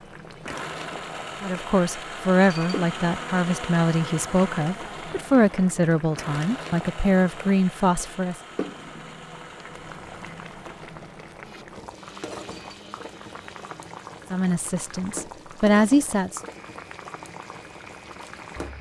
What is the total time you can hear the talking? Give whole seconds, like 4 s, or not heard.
9 s.